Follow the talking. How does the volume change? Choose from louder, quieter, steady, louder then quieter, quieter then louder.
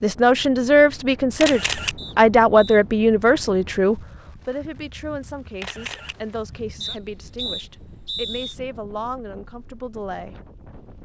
quieter.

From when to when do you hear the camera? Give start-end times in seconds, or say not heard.
1.4-1.9, 5.6-6.2.